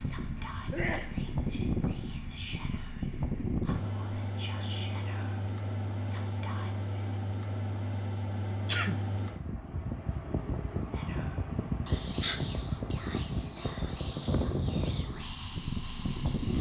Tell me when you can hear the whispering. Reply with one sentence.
You can hear the whispering from 0.0 to 7.2 s and from 10.9 to 16.5 s.